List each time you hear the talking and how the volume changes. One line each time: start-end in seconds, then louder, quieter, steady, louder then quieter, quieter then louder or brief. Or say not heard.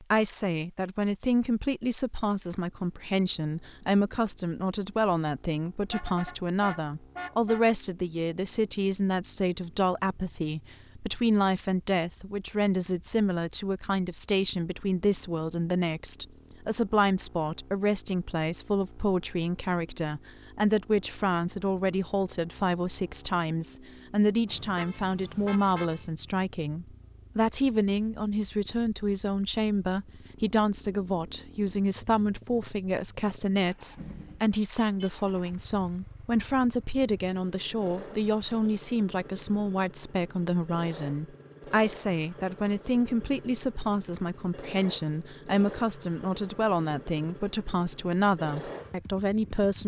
0.0-49.8 steady.